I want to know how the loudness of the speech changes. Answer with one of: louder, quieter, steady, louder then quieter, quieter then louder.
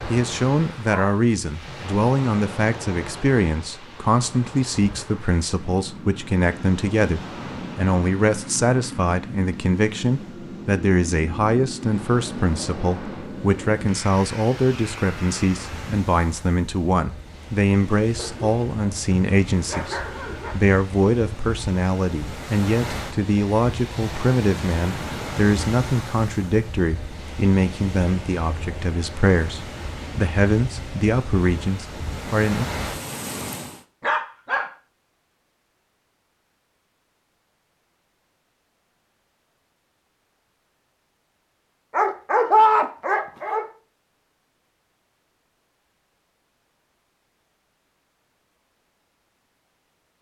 steady.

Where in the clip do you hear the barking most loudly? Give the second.
43 s.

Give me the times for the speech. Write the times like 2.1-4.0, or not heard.
0.1-32.6.